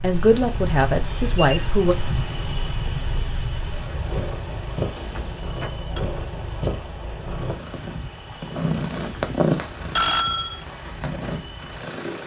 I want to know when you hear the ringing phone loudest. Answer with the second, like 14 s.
10 s.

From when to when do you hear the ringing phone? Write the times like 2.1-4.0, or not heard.
1.1-1.7, 5.0-6.0, 8.9-10.7.